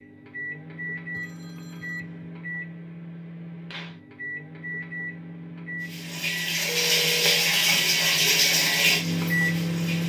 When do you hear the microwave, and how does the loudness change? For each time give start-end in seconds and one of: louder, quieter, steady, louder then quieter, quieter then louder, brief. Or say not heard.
0.0-10.0 louder.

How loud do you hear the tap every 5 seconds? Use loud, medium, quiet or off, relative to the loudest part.
off, loud.